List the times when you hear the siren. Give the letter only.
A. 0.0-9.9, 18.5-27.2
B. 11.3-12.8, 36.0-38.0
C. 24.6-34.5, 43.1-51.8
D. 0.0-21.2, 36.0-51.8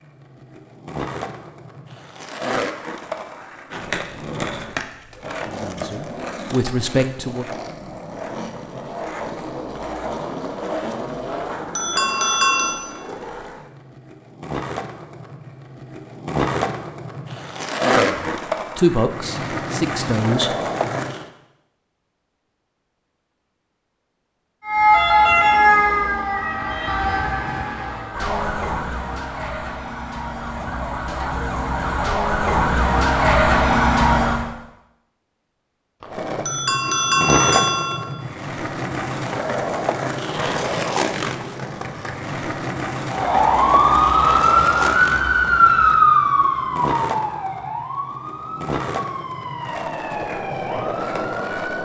C.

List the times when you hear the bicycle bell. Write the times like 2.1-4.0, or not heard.
11.3-12.8, 36.0-38.0.